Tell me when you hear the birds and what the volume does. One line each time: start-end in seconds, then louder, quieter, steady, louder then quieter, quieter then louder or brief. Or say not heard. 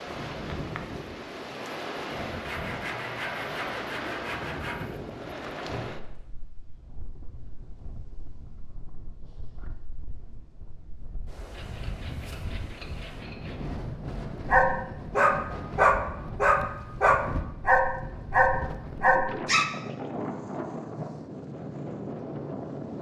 not heard.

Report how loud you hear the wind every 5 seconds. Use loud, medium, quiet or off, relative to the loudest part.
loud, medium, medium, loud, loud.